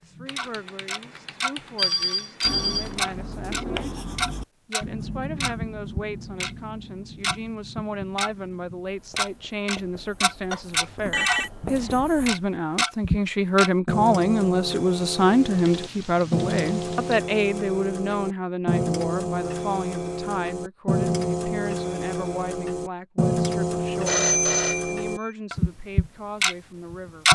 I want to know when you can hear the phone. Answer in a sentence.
The phone can be heard from 1.8 to 2.9 s, from 10.5 to 11.5 s and from 24.1 to 25.3 s.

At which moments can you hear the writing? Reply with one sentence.
You can hear the writing from 2.4 to 12.4 s.